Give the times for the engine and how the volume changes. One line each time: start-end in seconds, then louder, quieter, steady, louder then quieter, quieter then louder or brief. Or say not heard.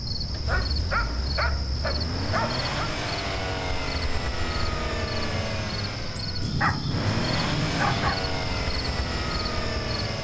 0.1-10.1 louder.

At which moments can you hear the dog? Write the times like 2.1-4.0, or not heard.
0.5-2.6, 6.4-8.2.